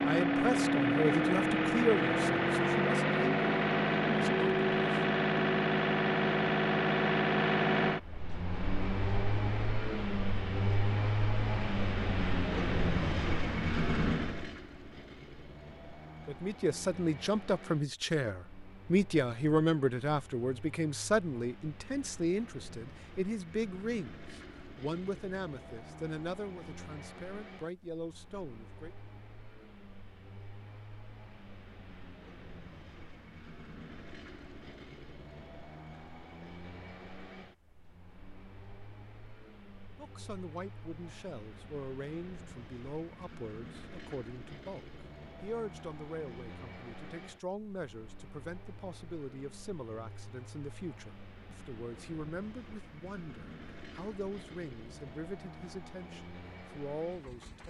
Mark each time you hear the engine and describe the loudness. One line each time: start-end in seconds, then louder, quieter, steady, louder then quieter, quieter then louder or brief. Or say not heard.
0.0-57.6 quieter.